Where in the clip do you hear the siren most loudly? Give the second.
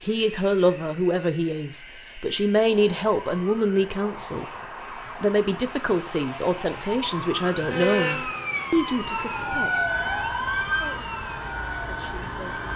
10 s.